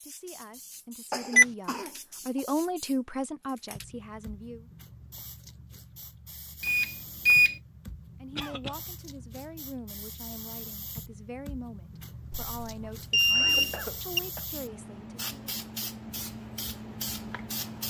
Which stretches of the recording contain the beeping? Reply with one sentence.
You can hear the beeping from 6.6 to 7.5 s and from 12.3 to 14.2 s.